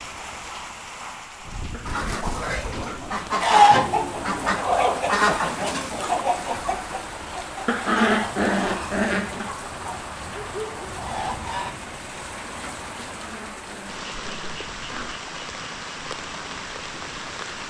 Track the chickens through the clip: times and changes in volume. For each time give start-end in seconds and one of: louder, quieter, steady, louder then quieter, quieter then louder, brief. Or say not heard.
1.9-11.8 quieter.